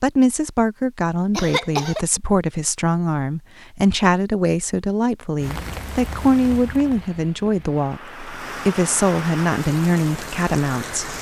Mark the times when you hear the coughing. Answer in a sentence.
The coughing can be heard from 1.3 to 2.0 s.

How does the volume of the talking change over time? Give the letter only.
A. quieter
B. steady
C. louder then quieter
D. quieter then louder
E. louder
B.